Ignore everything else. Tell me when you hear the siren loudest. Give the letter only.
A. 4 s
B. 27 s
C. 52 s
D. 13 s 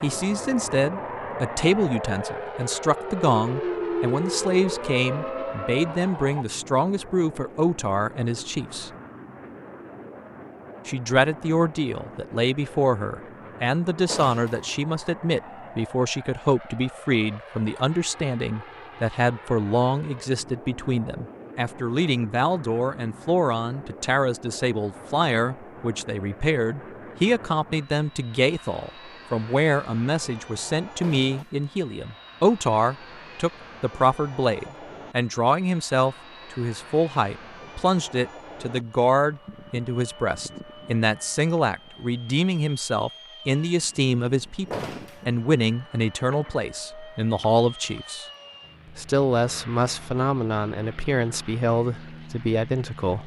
A.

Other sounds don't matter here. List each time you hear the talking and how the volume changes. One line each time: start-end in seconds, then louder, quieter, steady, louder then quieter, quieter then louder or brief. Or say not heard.
0.0-8.9 steady
10.8-48.2 steady
49.0-53.2 steady.